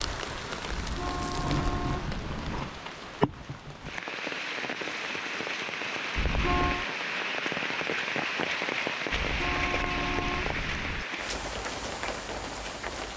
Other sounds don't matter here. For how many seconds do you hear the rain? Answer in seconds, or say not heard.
13 s.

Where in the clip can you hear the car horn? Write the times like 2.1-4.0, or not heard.
0.7-2.6, 6.2-6.8, 9.1-11.1.